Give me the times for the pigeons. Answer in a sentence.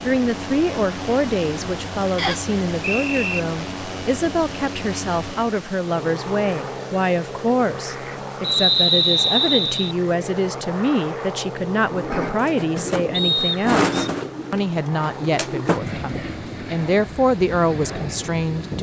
The pigeons can be heard from 11.8 to 16.6 s.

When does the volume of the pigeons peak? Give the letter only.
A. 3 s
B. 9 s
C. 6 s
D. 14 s
D.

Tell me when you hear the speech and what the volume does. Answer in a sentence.
The speech can be heard from 0.0 to 18.7 s, at a steady volume.